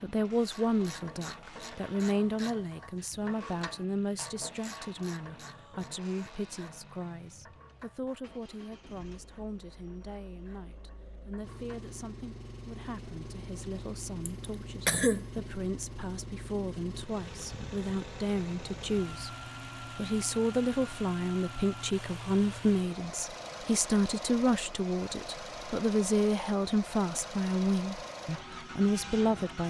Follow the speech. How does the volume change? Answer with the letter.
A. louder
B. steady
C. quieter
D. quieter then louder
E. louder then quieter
D.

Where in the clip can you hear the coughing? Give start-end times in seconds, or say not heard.
14.2-15.4.